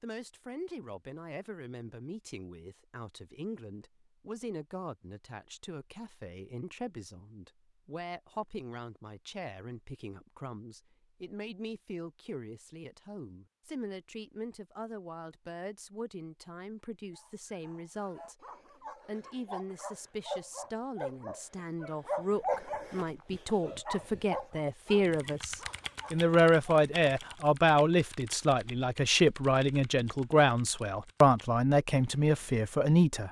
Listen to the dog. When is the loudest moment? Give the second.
23 s.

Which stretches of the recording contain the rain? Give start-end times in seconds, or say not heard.
not heard.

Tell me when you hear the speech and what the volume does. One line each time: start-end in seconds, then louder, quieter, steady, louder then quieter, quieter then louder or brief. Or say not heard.
0.0-18.4 steady
19.1-33.2 louder.